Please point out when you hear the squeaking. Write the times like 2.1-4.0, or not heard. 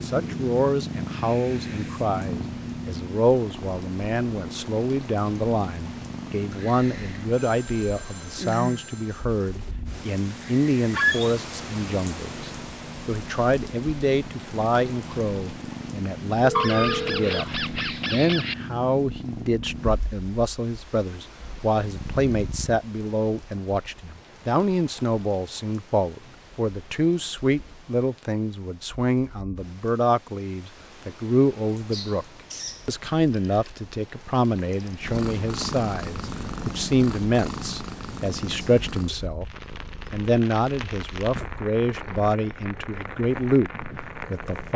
10.9-11.3, 16.6-18.6, 31.9-32.9.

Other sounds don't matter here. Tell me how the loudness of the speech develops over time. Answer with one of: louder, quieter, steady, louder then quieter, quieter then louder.
steady.